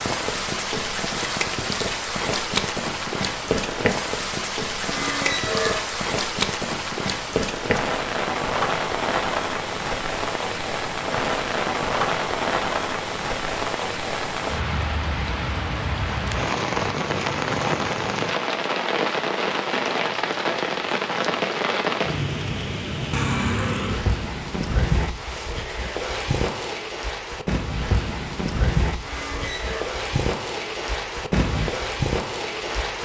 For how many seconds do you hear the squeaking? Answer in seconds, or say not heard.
2 s.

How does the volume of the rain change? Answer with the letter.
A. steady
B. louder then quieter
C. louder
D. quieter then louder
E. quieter
A.